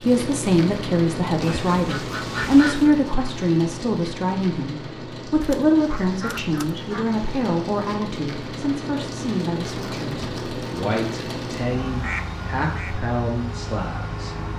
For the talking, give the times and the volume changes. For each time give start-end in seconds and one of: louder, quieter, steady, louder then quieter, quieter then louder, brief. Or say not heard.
0.0-14.4 quieter.